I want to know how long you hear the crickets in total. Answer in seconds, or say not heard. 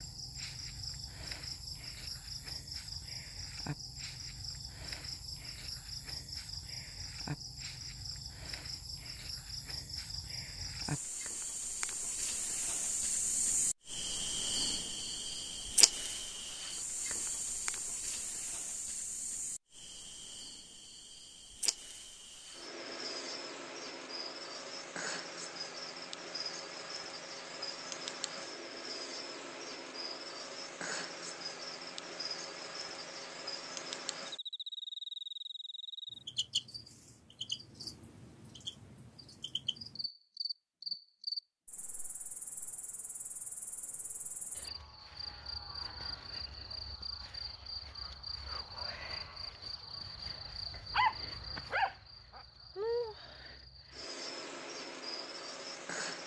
56 s.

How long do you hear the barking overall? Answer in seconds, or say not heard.
2 s.